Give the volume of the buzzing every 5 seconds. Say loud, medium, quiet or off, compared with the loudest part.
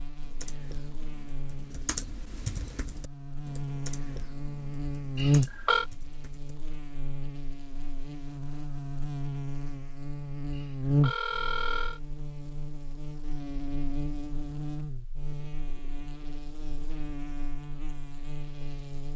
medium, loud, loud, medium.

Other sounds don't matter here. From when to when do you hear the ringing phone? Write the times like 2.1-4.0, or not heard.
5.2-5.8, 10.6-12.0.